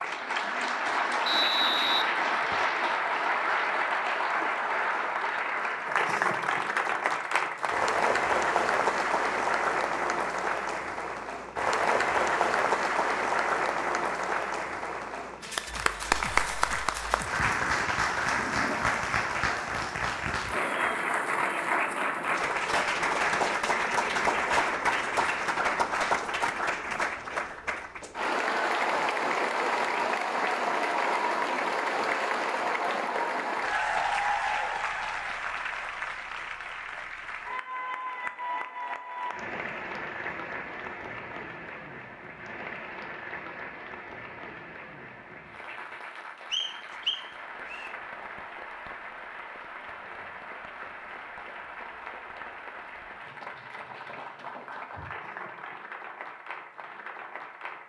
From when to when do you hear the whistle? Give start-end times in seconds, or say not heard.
1.2-2.6, 46.5-47.9.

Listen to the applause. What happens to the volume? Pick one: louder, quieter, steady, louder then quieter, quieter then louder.
quieter.